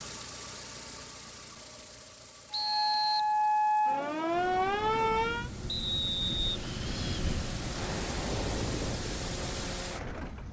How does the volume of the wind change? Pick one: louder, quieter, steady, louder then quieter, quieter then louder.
louder then quieter.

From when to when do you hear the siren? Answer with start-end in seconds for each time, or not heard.
2.5-5.5.